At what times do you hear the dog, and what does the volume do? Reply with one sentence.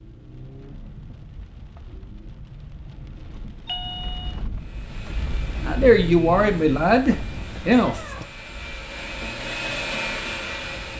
The dog can't be heard in this clip.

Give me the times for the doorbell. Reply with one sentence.
You can hear the doorbell from 3.6 to 4.3 s.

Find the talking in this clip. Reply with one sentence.
The talking can be heard from 5.7 to 8.0 s.